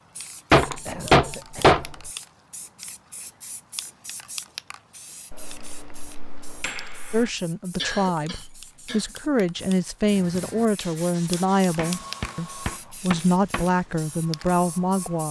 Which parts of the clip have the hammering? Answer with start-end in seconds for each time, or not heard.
0.5-2.1, 5.3-7.3, 11.8-13.7.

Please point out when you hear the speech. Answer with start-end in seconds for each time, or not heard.
7.1-15.2.